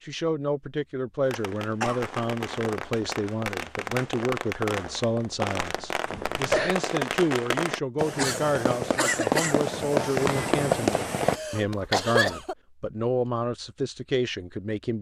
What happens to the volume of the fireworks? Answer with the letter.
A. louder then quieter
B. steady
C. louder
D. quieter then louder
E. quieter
C.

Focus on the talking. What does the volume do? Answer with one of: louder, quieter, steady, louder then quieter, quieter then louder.
steady.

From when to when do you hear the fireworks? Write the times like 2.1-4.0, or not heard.
1.2-11.4.